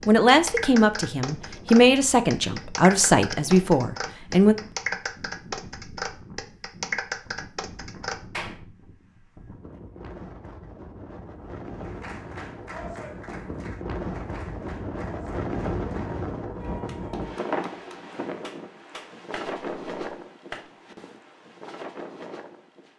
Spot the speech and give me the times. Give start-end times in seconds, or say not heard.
0.1-4.5.